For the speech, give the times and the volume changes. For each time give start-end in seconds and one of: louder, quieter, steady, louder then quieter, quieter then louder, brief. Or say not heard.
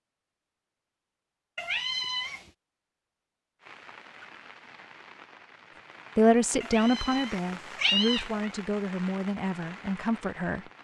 6.2-10.7 quieter.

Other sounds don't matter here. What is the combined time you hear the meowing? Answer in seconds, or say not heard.
3 s.